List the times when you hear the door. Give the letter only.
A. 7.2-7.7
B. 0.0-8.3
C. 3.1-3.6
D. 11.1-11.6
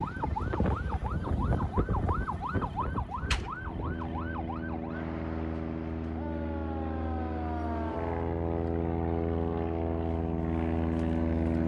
C.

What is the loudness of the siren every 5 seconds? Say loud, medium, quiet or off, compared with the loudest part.
loud, medium, off.